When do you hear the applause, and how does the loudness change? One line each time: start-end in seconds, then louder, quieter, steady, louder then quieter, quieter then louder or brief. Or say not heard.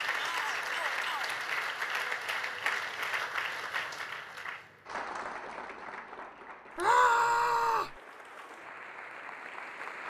0.0-10.0 quieter.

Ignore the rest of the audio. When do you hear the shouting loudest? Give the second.
7 s.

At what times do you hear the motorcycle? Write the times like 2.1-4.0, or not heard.
not heard.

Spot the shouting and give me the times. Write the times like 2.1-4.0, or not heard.
0.1-1.3, 6.8-8.0.